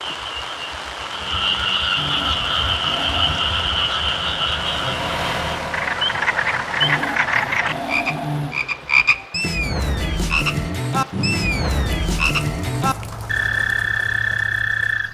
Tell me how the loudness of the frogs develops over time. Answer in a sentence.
The volume of the frogs stays about the same.